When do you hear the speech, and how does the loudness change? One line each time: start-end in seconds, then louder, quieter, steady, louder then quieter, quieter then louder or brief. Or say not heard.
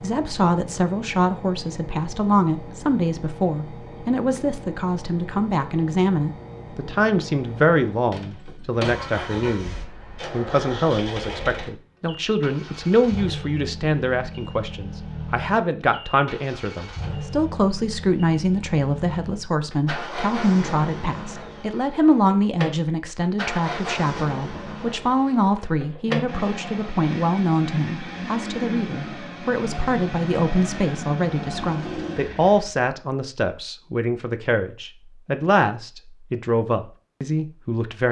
0.0-38.0 steady.